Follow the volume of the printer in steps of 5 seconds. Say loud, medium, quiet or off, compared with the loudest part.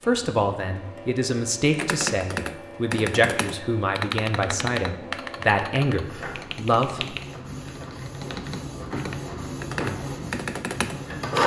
quiet, medium, loud.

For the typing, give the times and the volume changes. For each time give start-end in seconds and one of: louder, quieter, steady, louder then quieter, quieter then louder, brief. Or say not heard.
1.7-11.4 quieter then louder.